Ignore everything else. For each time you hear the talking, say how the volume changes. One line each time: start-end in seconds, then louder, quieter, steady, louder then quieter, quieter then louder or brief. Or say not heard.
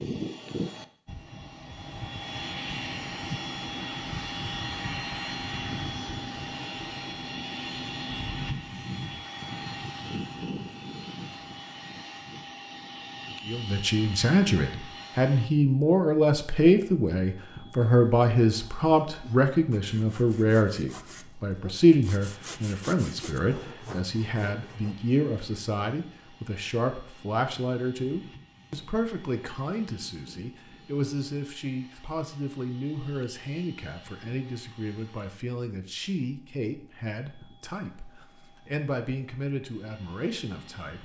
13.4-40.9 quieter.